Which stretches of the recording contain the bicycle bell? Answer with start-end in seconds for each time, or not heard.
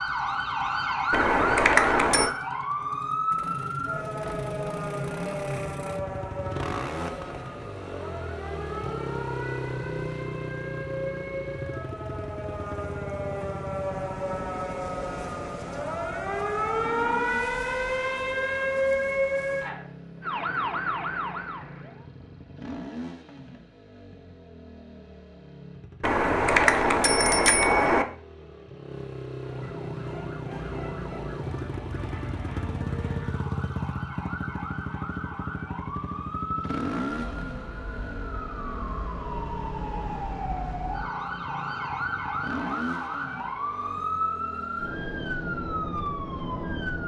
1.1-2.3, 26.0-28.1.